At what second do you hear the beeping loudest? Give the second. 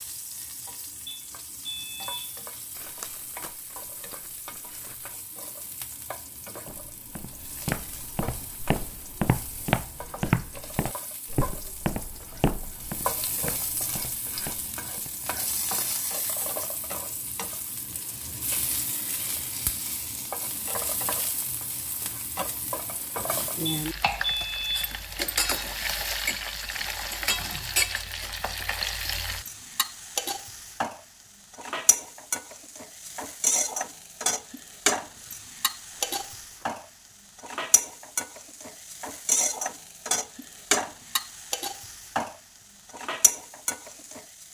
24 s.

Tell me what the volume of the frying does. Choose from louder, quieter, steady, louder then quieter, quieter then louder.
louder.